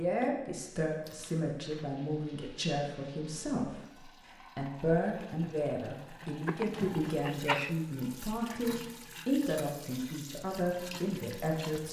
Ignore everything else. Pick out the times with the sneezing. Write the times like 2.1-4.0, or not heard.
6.5-7.8.